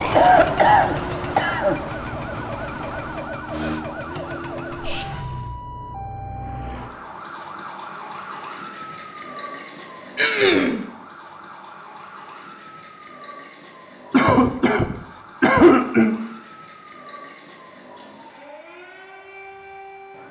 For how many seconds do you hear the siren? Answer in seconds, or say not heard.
20 s.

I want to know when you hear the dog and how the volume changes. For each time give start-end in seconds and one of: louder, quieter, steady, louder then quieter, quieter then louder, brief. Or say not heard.
not heard.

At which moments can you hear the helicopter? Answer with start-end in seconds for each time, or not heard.
not heard.